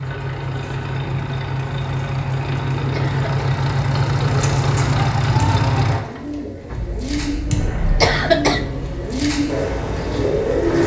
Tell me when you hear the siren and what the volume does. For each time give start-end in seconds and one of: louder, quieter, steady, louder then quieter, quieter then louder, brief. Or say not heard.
not heard.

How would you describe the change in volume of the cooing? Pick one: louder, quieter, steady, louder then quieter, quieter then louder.
louder.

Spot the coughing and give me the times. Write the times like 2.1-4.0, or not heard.
2.9-3.5, 8.0-8.7.